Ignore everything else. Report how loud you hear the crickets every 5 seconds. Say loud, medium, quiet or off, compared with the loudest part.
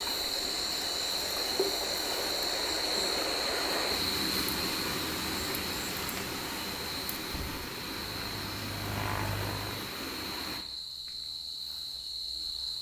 loud, medium, medium.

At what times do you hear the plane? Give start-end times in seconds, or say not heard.
7.8-9.9.